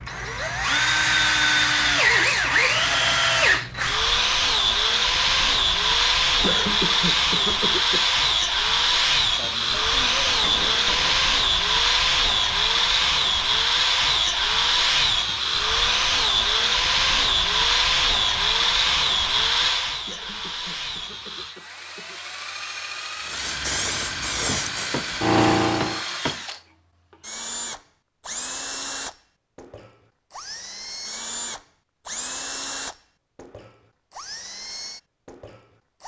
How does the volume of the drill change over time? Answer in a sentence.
The loudness of the drill goes down.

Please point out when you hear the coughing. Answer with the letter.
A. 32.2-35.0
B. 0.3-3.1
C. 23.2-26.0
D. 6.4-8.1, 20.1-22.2
D.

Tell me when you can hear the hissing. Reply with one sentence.
The hissing can be heard from 23.2 to 26.0 s.